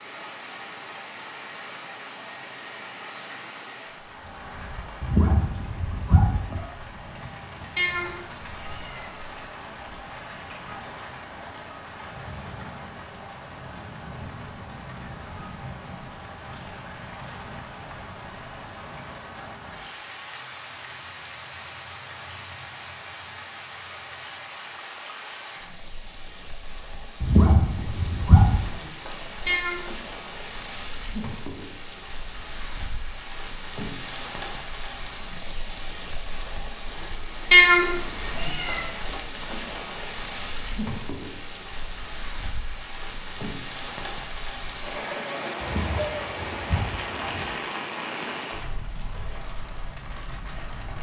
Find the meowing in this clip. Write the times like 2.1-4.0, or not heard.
7.8-9.3, 29.4-29.9, 37.5-38.9.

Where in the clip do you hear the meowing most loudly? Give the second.
38 s.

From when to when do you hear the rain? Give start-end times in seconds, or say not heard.
0.0-50.9.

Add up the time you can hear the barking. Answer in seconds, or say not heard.
5 s.